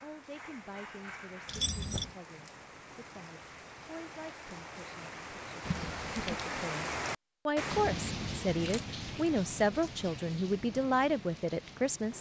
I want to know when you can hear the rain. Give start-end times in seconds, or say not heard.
0.0-12.1.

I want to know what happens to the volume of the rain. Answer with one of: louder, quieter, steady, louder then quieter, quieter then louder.
louder then quieter.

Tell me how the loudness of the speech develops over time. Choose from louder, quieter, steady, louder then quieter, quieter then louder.
louder.